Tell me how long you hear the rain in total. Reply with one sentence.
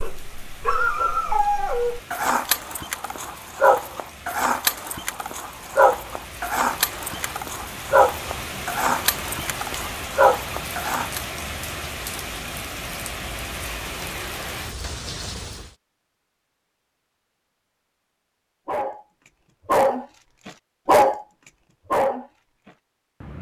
You can hear the rain for 16 seconds altogether.